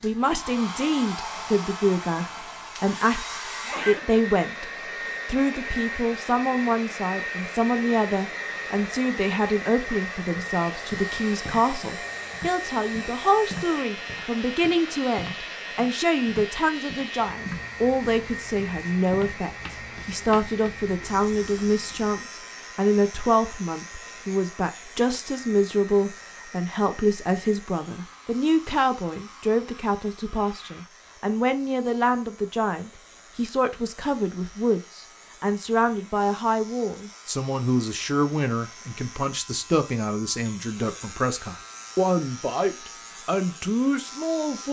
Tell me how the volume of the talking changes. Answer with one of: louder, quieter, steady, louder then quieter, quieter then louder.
steady.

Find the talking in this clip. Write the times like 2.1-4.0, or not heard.
0.0-4.7, 5.2-44.6.